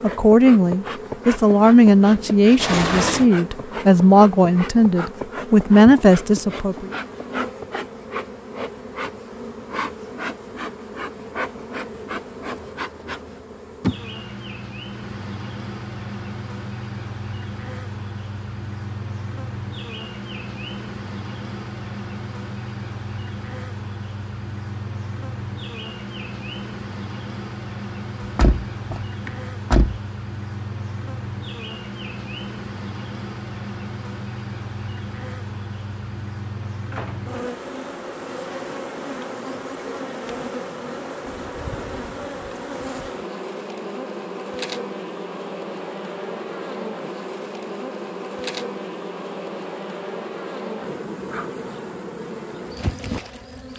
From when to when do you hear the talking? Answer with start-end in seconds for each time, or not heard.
0.0-6.9.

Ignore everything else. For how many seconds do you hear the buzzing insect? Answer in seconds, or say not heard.
54 s.